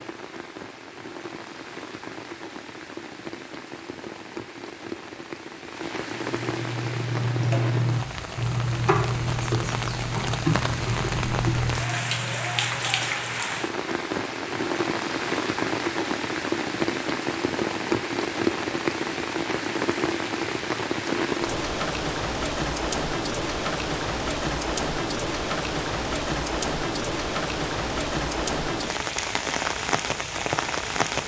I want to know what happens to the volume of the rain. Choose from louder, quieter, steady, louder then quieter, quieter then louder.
louder.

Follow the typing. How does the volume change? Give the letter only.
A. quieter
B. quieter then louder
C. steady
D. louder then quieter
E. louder
A.